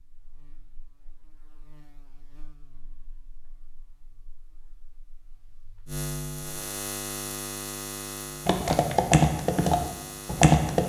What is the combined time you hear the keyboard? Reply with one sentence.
You can hear the keyboard for 2 seconds altogether.